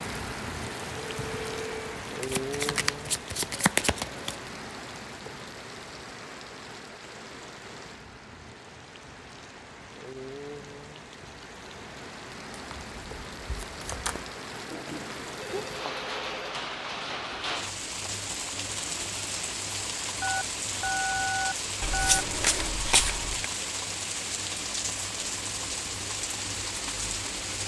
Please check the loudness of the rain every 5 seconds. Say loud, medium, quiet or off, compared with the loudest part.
loud, medium, medium, loud, loud, loud.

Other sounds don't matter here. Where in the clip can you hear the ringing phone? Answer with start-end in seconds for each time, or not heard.
0.9-1.9, 14.7-16.6, 20.2-22.2.